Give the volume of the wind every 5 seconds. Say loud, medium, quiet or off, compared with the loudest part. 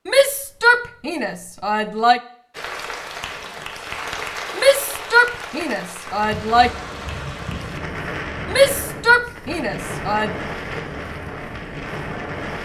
off, loud, loud.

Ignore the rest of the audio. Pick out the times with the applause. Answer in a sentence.
The applause can be heard from 2.5 to 7.8 s.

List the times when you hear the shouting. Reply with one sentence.
You can hear the shouting from 0.1 to 2.2 s, from 4.5 to 6.7 s and from 8.4 to 10.3 s.